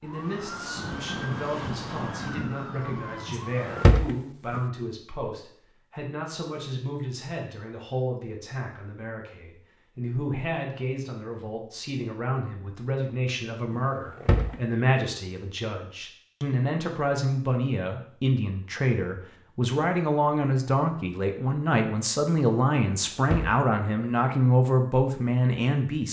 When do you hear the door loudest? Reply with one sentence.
The volume of the door peaks at 4 seconds.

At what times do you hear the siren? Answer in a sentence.
You can hear the siren from 0.0 to 4.0 s.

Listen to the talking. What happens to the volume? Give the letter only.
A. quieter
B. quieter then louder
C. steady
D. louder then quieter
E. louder
E.